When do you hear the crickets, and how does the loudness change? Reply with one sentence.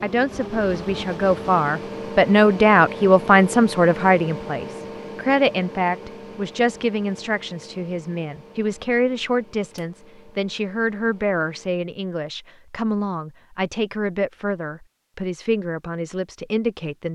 The crickets can't be heard in this clip.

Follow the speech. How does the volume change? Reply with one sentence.
The volume of the speech goes down.